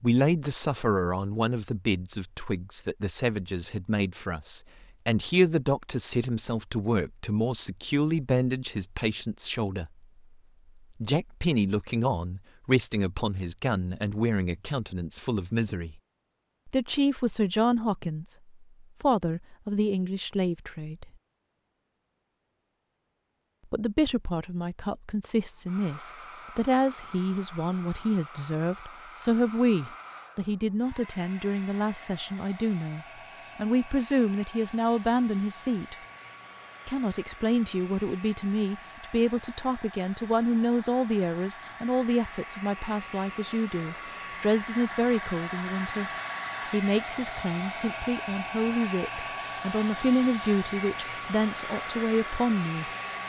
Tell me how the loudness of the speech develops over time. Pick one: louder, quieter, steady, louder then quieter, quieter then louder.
steady.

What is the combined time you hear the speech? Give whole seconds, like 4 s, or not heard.
47 s.